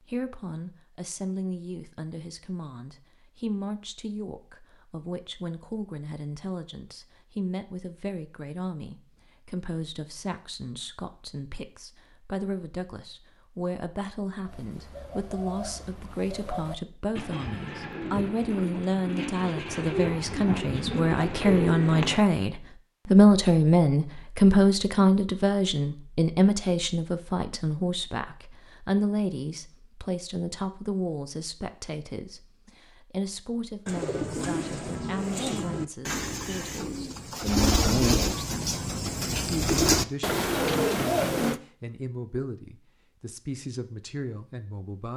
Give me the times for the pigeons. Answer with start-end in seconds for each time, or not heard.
14.4-22.2, 33.9-41.6.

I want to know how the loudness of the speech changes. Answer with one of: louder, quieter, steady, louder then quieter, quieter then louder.
louder then quieter.